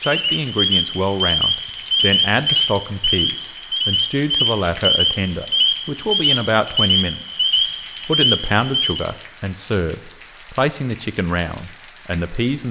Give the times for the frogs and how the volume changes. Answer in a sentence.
You can hear the frogs from 0.0 to 9.1 s, at a steady volume.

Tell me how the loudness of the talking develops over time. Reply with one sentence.
The volume of the talking stays about the same.